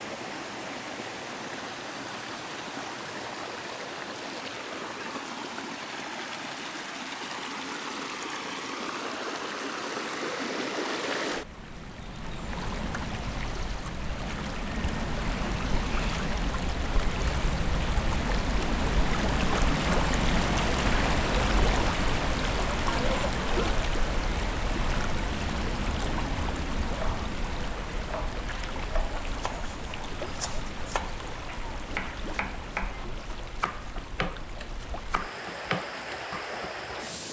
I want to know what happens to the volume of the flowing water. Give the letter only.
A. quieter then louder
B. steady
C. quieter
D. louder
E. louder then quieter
E.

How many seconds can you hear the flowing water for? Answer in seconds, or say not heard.
37 s.